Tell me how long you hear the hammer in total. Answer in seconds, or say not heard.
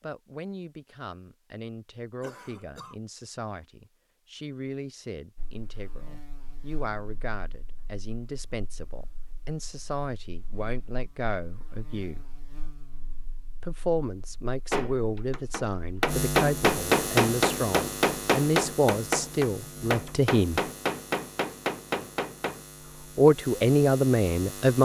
8 s.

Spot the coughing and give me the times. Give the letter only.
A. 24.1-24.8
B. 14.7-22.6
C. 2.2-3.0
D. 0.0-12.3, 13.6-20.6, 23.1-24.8
C.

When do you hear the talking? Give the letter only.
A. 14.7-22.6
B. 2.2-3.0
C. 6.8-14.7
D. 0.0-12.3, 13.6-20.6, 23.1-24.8
D.